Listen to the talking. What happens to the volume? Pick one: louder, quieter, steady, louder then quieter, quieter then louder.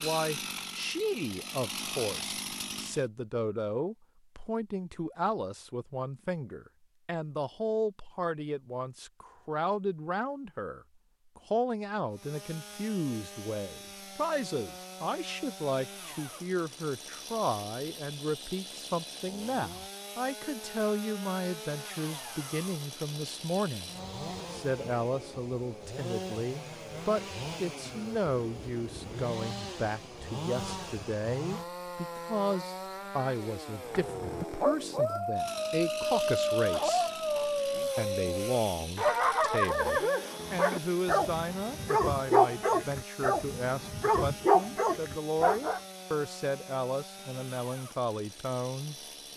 steady.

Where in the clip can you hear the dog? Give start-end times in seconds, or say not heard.
33.9-45.8.